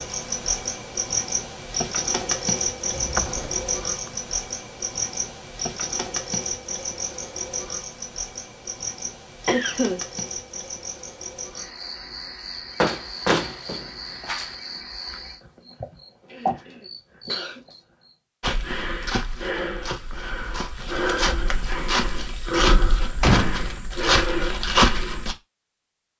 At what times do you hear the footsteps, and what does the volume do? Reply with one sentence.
You can hear the footsteps from 18.4 to 25.4 s, getting louder.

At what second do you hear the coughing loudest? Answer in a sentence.
The loudest moment of the coughing is at 10 seconds.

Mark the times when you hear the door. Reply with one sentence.
You can hear the door from 2.9 to 4.1 s, from 12.8 to 14.5 s and from 22.7 to 23.7 s.